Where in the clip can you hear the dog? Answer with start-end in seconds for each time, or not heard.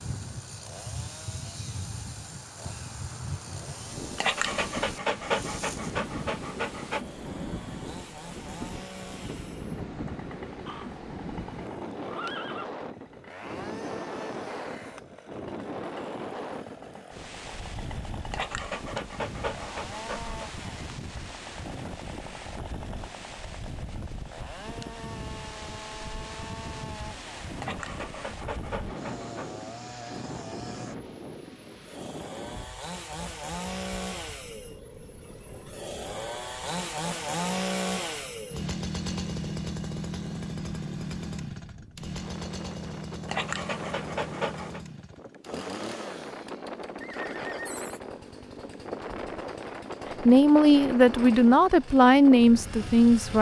4.2-7.0, 18.3-20.5, 27.6-29.6, 43.2-44.8.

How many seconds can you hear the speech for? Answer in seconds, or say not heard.
3 s.